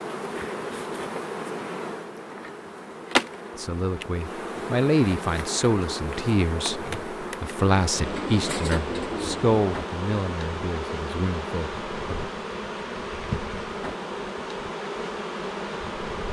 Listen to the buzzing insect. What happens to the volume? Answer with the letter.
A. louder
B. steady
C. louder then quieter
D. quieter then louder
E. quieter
B.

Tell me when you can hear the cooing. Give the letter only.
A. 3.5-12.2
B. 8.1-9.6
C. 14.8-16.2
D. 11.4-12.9
B.